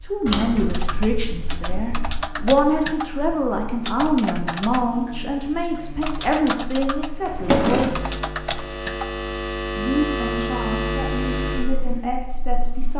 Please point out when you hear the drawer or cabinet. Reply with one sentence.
The drawer or cabinet can be heard from 0.2 to 2.2 s and from 7.2 to 8.0 s.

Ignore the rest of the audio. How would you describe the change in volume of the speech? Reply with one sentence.
The volume of the speech goes down.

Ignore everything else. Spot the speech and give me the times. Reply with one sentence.
The speech can be heard from 0.1 to 8.1 s and from 9.7 to 12.9 s.